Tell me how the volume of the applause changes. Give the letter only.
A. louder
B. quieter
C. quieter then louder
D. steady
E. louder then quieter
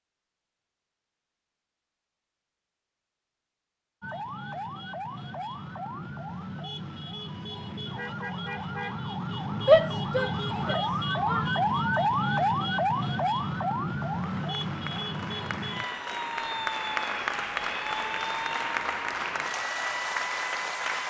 A.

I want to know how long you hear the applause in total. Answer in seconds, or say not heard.
7 s.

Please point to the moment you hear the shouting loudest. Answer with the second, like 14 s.
10 s.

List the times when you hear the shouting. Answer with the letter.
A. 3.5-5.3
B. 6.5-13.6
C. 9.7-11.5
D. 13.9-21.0
C.